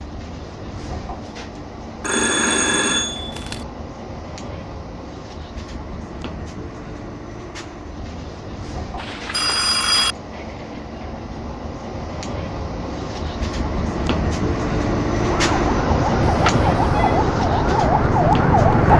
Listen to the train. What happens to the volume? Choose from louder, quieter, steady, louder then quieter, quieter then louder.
louder.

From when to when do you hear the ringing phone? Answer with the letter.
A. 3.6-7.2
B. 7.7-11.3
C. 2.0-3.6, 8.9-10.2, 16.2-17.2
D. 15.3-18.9
C.